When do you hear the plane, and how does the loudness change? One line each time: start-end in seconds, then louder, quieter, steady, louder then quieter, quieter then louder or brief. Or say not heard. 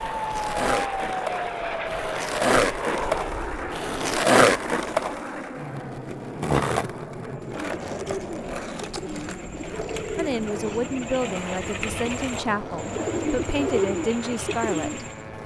0.0-15.4 quieter.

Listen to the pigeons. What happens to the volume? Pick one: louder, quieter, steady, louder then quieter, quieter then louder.
louder.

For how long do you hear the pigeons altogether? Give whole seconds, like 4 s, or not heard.
8 s.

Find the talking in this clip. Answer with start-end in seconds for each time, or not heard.
10.2-15.4.